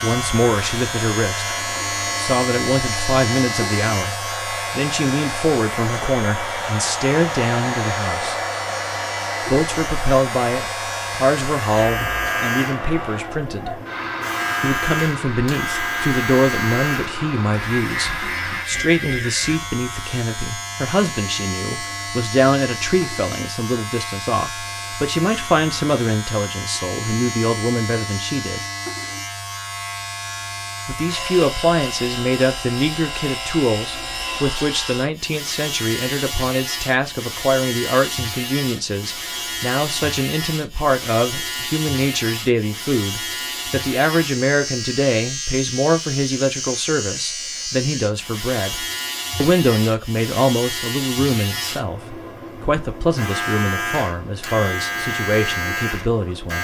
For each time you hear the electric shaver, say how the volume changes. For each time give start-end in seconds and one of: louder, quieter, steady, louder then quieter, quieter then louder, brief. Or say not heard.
0.0-56.5 steady.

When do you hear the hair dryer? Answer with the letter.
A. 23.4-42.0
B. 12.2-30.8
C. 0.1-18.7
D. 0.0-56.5
C.